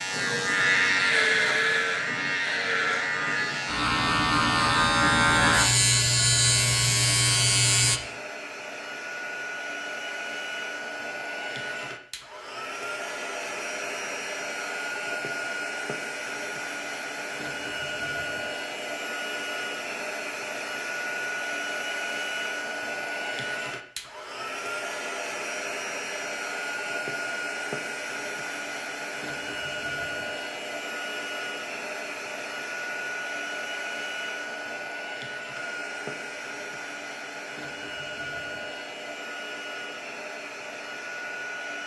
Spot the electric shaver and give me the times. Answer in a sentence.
The electric shaver can be heard from 0.0 to 8.0 s.